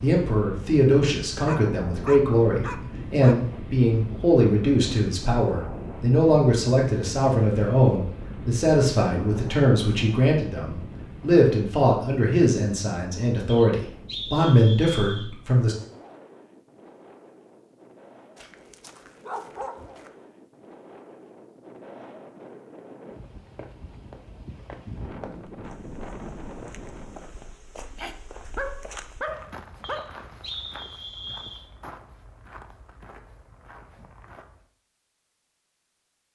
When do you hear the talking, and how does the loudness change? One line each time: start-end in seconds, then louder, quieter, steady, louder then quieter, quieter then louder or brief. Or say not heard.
0.0-15.8 steady.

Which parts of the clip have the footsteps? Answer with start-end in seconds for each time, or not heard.
23.6-34.6.